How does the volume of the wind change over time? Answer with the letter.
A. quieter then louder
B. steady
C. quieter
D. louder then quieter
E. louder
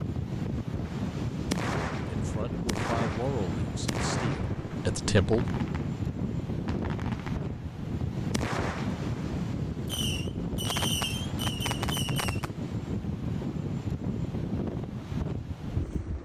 B.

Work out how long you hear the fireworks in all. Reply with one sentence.
You can hear the fireworks for 12 seconds altogether.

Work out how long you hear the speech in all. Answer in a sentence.
The speech can be heard for 3 seconds in total.